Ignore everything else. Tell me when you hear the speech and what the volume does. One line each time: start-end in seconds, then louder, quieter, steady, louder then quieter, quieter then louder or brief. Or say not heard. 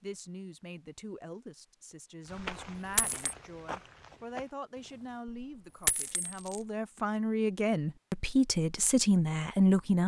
0.0-10.0 louder.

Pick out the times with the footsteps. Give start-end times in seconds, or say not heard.
2.2-5.2.